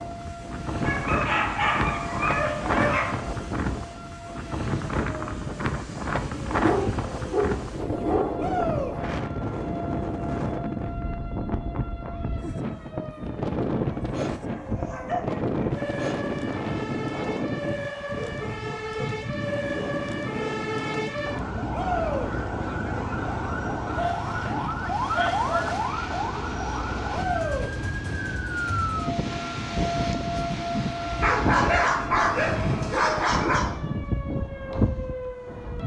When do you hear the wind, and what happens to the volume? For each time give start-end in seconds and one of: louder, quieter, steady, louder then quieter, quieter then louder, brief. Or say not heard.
0.0-35.8 quieter.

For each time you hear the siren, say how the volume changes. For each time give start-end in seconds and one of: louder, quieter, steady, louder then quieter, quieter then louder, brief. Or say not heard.
0.0-35.8 louder.